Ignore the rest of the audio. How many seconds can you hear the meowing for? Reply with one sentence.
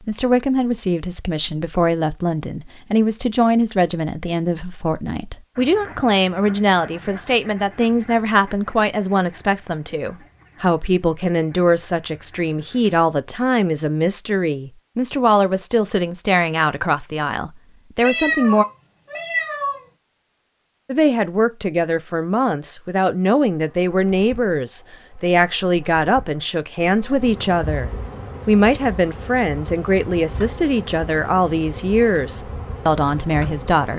You can hear the meowing for 2 seconds altogether.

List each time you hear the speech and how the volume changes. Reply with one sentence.
The speech can be heard from 0.1 to 18.6 s, at a steady volume; and from 20.9 to 33.9 s, at a steady volume.